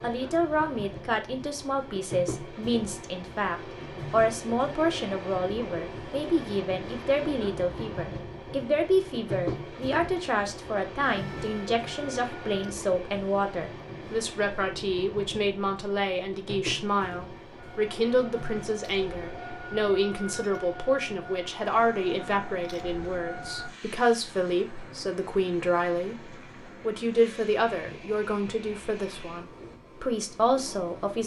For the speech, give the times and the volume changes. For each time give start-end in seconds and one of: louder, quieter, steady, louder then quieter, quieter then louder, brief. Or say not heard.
0.0-31.2 steady.